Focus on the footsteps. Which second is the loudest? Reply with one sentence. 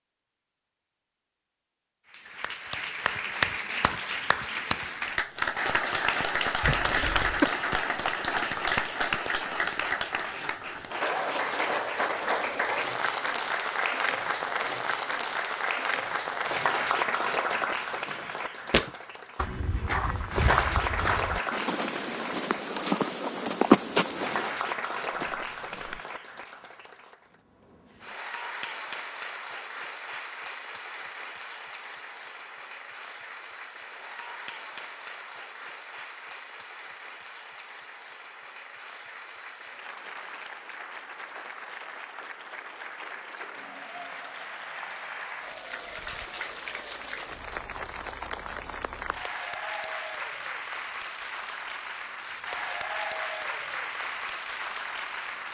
The loudest moment of the footsteps is at 24 seconds.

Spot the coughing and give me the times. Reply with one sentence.
The coughing can be heard from 6.6 to 7.5 s.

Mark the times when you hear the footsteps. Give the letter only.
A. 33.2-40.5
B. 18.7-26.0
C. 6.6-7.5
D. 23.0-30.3
B.